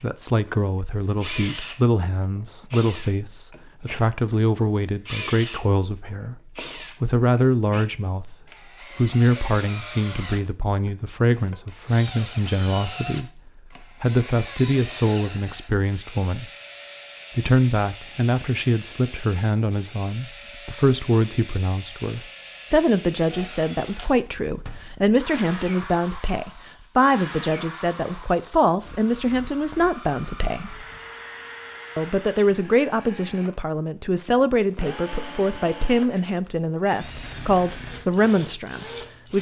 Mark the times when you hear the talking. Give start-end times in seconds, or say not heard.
0.0-6.4, 7.0-8.3, 8.9-16.4, 17.4-30.9, 31.9-39.3.